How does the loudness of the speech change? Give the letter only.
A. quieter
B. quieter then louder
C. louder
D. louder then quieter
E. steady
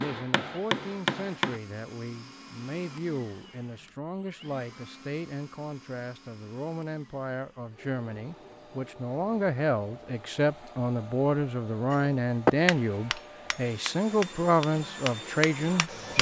C.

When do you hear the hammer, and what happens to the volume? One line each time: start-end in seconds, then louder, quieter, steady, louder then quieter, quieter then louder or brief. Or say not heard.
0.0-1.6 brief
11.9-16.1 quieter then louder.